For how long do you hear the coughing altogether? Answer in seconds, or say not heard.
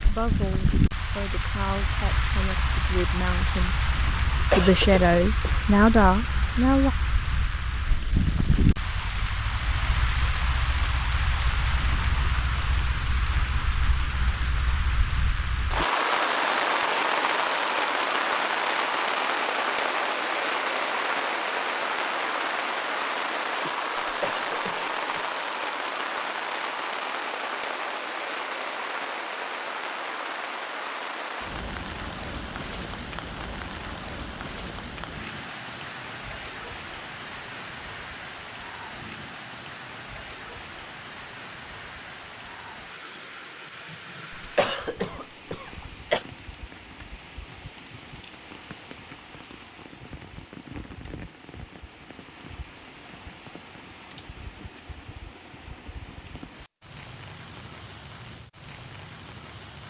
4 s.